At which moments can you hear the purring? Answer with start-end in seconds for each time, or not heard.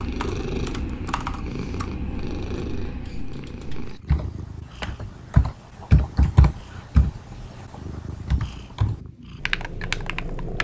0.0-10.5.